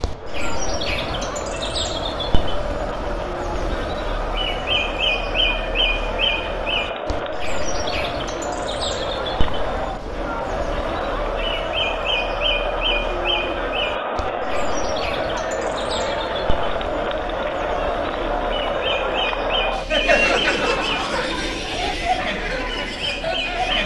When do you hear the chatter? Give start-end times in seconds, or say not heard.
0.0-23.8.